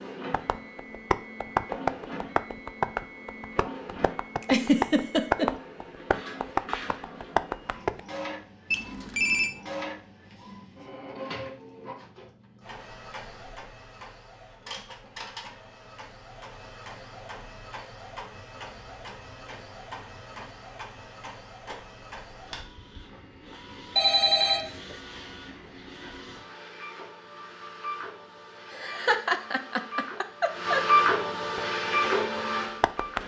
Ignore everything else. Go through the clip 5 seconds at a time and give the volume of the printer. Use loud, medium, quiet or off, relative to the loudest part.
quiet, quiet, quiet, quiet, quiet, quiet, loud.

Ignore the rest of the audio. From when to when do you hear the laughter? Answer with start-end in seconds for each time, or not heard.
4.4-5.5, 28.7-31.0.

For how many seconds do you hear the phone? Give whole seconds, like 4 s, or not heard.
2 s.